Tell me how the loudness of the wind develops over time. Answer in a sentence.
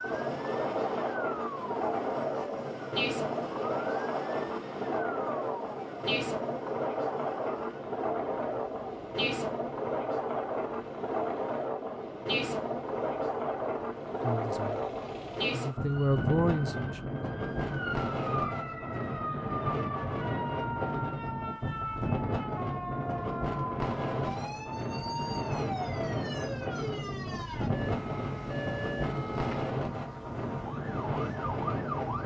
The loudness of the wind stays about the same.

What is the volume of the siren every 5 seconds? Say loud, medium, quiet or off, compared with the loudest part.
loud, medium, quiet, loud, loud, loud, loud.